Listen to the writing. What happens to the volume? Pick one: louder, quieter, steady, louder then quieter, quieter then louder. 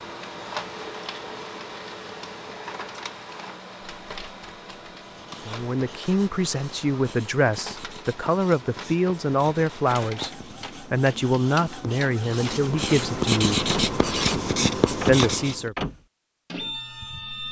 louder.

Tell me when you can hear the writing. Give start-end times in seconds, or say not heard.
5.0-15.7.